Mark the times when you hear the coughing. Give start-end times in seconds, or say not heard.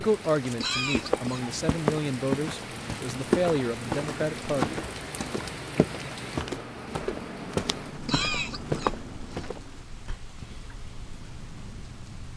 0.6-1.4, 8.1-9.4.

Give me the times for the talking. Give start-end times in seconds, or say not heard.
0.0-4.8.